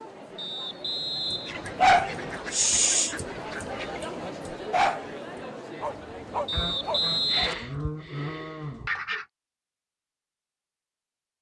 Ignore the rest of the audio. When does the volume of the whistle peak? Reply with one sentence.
The volume of the whistle peaks at 7 seconds.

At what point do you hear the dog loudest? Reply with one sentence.
The volume of the dog peaks at 2 seconds.